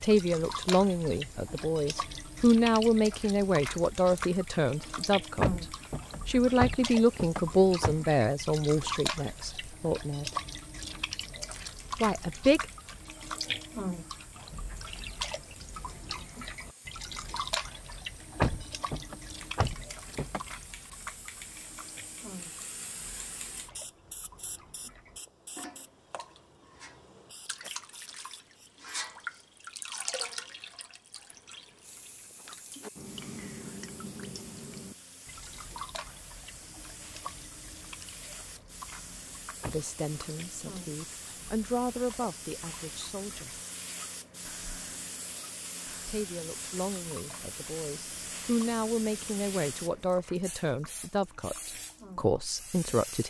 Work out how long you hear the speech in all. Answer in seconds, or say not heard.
22 s.